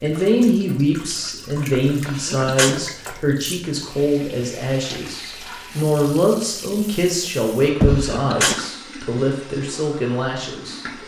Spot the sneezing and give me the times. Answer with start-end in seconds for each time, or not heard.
2.0-2.8, 7.9-8.6.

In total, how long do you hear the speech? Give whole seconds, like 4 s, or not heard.
11 s.